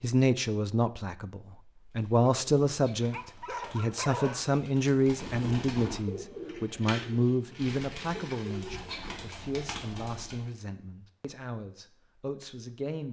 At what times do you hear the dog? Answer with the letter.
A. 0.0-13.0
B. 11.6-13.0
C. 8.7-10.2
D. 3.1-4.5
D.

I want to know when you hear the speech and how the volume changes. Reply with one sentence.
You can hear the speech from 0.0 to 13.0 s, getting quieter.